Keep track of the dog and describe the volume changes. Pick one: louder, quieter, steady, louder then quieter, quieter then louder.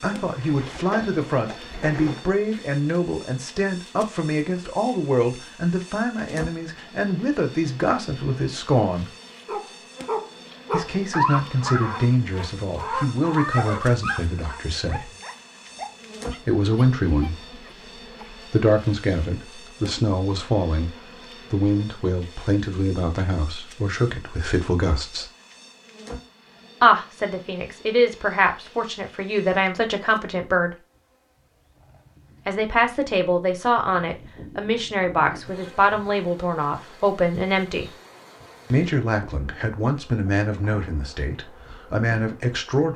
quieter.